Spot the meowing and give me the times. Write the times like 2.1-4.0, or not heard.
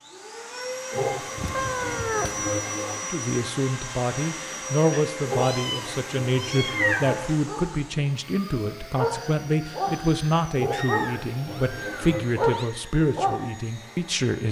1.4-2.5, 4.9-7.3, 10.7-12.7.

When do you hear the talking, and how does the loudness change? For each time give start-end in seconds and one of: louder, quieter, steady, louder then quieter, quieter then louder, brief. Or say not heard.
3.0-14.4 steady.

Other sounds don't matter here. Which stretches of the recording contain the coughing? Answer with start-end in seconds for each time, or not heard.
0.9-3.0, 5.2-7.2, 10.6-12.2.